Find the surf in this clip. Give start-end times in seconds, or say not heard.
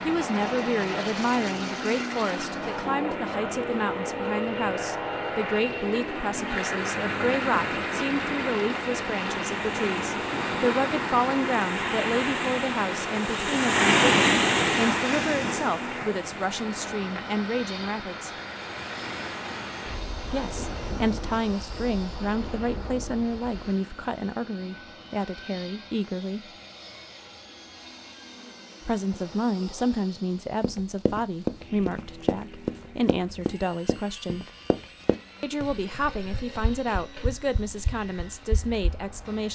0.0-23.9.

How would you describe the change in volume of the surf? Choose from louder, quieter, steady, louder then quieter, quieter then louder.
louder then quieter.